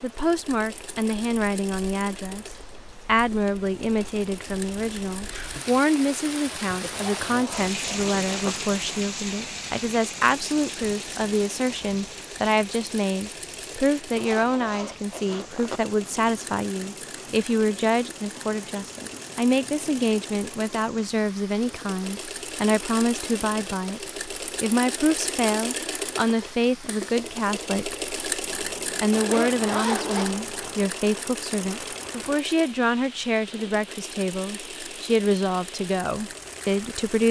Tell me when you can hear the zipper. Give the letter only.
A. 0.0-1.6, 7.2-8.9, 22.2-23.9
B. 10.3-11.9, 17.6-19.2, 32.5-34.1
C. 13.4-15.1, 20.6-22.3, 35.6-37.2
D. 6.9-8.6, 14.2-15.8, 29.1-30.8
D.